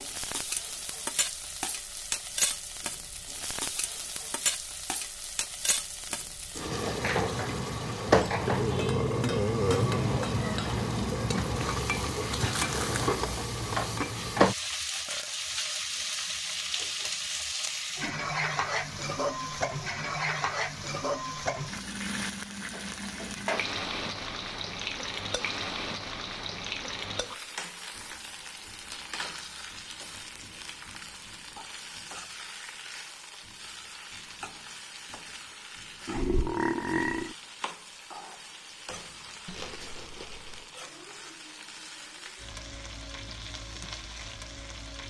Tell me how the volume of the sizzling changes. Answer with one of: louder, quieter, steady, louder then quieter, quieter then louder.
quieter.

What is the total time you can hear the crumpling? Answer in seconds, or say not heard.
2 s.